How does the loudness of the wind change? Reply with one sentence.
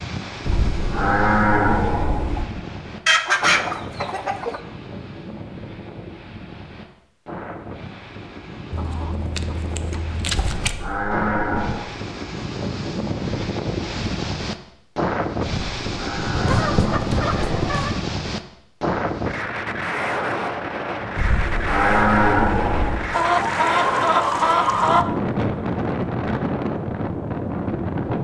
The loudness of the wind goes up.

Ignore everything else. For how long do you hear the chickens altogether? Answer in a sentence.
The chickens can be heard for 7 seconds in total.